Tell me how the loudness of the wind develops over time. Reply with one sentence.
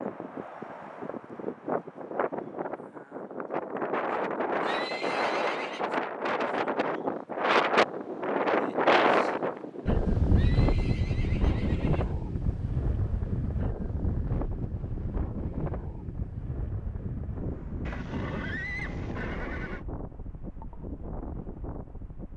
The volume of the wind goes up, then down.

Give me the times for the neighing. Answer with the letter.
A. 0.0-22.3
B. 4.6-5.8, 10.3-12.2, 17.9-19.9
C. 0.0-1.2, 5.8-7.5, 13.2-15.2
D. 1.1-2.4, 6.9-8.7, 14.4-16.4
B.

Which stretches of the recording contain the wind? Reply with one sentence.
You can hear the wind from 0.0 to 22.3 s.